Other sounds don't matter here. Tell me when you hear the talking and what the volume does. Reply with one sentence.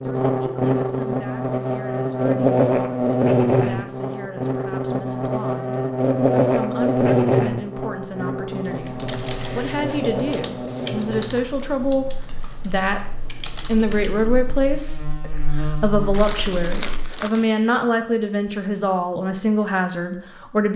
You can hear the talking from 0.0 to 20.7 s, getting louder.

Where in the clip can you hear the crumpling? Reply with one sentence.
You can hear the crumpling from 16.1 to 17.5 s.